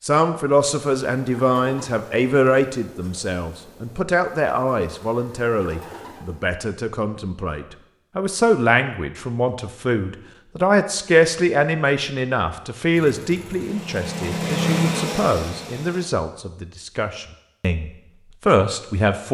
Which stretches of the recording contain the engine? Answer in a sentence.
You can hear the engine from 12.9 to 16.1 s.